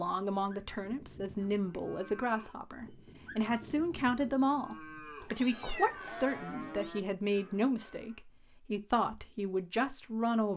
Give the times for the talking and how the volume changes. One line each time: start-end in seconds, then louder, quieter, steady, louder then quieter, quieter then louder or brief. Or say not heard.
0.0-10.5 steady.